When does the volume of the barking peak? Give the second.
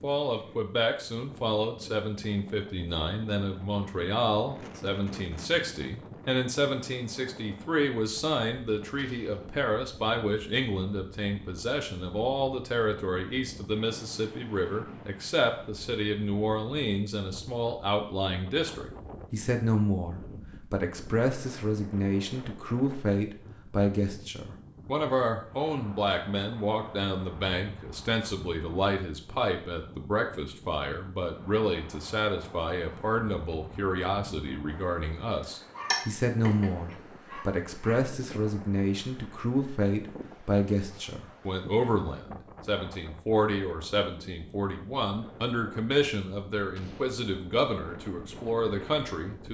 36 s.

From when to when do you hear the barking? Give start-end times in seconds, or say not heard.
35.7-38.0.